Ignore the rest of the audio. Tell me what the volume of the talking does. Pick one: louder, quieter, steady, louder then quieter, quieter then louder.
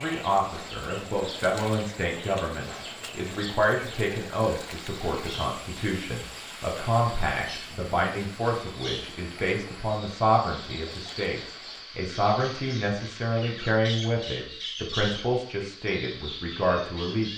steady.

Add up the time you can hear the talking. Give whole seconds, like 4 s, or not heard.
17 s.